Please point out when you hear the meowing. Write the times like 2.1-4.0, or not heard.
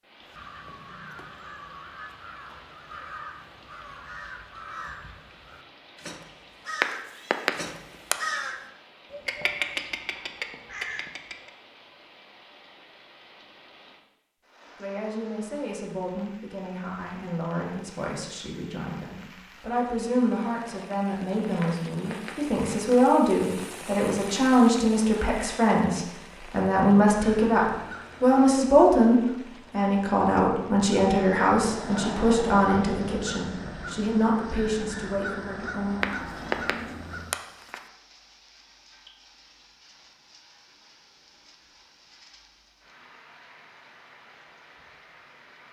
6.8-8.2, 21.6-22.9, 36.0-37.8.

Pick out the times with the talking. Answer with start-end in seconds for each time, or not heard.
14.8-36.1.